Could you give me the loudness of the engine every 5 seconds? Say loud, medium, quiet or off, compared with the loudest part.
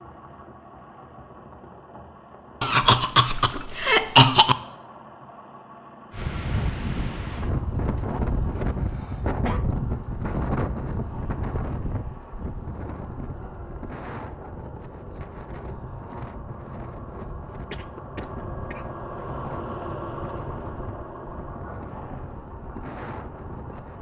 medium, medium, medium, loud, loud.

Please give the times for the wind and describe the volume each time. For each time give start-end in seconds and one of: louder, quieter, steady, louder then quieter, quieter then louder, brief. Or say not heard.
6.1-23.9 quieter.